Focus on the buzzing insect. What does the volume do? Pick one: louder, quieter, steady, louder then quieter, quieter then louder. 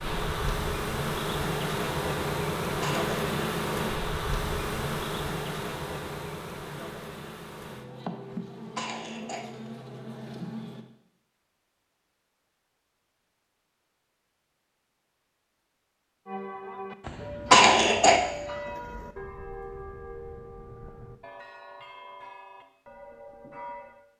quieter.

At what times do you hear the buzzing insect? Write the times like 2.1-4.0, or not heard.
0.0-10.8.